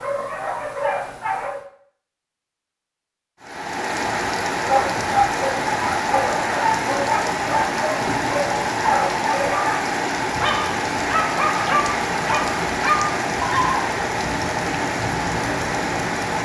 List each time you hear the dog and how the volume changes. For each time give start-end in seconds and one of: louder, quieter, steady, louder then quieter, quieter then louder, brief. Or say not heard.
0.0-1.6 brief
4.6-13.8 steady.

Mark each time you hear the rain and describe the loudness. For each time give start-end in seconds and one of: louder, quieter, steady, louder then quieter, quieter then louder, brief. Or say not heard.
3.4-16.4 steady.